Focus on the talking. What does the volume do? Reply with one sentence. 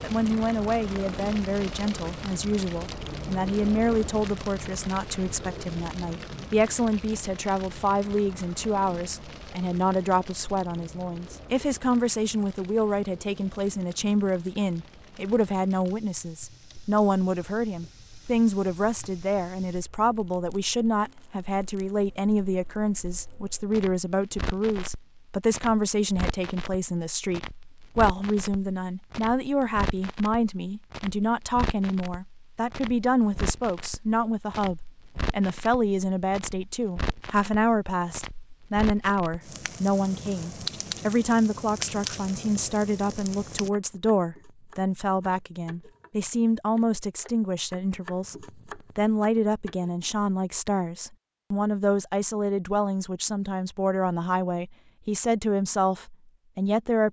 The loudness of the talking stays about the same.